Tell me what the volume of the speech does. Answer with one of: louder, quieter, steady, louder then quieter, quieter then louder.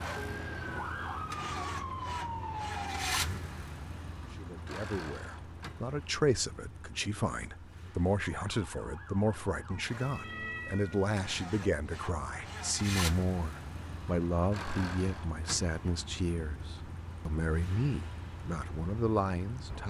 steady.